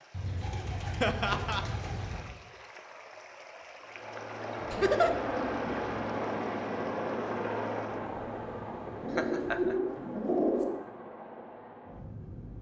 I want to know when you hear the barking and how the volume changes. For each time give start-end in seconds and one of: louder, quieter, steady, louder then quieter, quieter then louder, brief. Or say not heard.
not heard.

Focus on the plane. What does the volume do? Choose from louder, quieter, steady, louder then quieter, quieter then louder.
quieter.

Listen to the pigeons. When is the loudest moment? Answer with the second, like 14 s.
10 s.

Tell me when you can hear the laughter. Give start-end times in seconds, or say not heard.
1.0-1.6, 4.7-5.2, 9.2-9.8.